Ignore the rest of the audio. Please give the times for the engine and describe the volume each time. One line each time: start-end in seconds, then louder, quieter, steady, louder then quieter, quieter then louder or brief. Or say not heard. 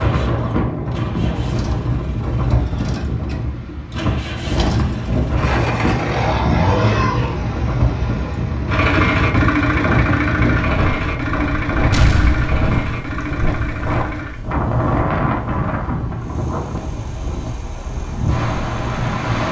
0.0-19.4 louder then quieter.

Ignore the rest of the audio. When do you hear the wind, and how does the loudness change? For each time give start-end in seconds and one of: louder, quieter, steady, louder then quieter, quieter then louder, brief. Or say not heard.
0.0-19.4 steady.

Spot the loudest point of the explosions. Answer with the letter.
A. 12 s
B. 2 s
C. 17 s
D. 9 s
A.